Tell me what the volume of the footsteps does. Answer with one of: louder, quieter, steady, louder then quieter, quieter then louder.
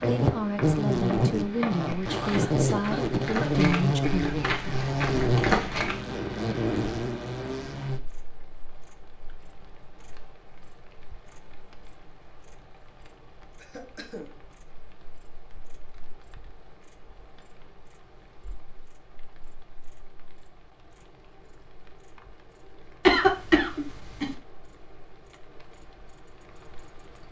louder.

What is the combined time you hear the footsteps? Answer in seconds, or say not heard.
6 s.